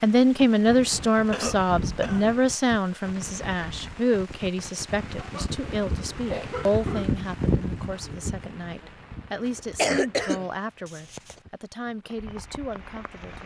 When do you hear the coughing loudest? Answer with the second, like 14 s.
10 s.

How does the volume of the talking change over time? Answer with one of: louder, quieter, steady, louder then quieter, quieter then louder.
quieter.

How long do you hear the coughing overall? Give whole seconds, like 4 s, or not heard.
5 s.